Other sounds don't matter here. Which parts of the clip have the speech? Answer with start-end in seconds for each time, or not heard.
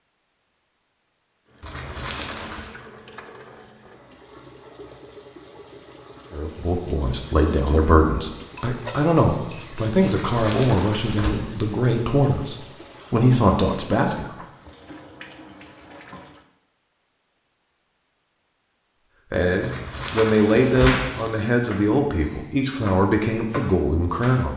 6.3-14.2, 19.3-24.5.